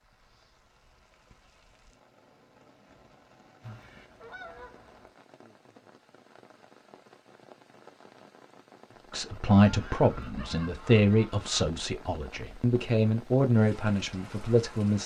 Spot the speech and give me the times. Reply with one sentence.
The speech can be heard from 9.1 to 15.0 s.